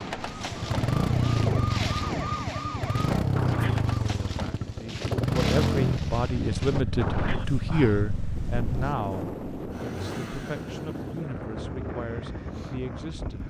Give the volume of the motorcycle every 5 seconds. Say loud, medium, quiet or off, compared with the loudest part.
loud, loud, quiet.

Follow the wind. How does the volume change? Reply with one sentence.
The loudness of the wind stays about the same.